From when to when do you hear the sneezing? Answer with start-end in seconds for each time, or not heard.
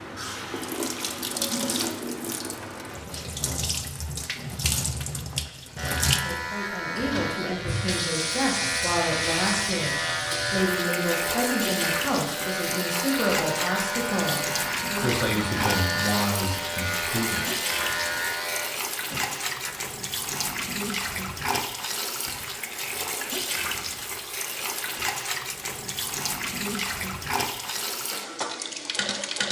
not heard.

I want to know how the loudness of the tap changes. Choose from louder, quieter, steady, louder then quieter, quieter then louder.
steady.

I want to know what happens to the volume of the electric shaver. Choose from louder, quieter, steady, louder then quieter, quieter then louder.
steady.